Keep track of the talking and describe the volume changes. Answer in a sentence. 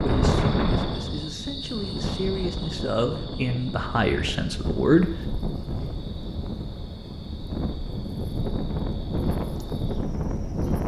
The volume of the talking goes up.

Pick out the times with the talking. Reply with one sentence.
The talking can be heard from 0.0 to 5.2 s.